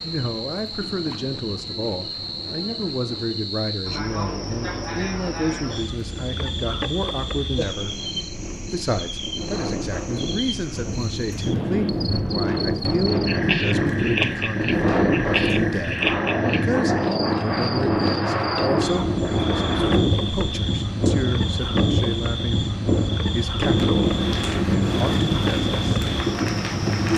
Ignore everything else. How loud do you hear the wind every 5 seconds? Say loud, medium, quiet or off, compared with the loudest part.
quiet, quiet, loud, loud, loud, loud.